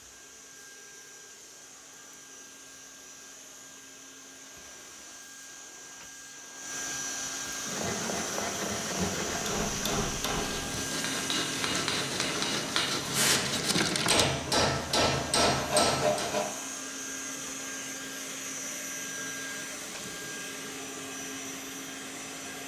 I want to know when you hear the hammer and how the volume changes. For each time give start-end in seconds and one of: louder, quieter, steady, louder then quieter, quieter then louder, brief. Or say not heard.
9.2-16.4 louder.